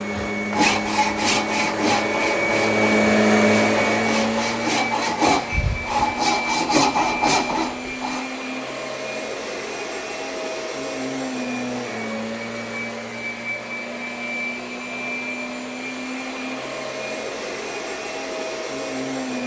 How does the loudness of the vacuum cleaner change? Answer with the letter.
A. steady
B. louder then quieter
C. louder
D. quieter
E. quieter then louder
D.